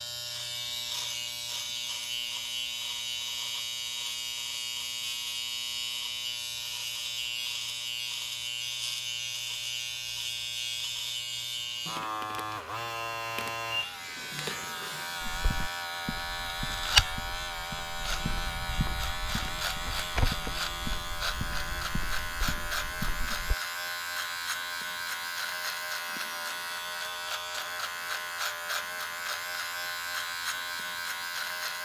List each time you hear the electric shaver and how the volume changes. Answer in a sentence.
You can hear the electric shaver from 0.0 to 31.7 s, at a steady volume.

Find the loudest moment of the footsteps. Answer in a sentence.
The volume of the footsteps peaks at 17 seconds.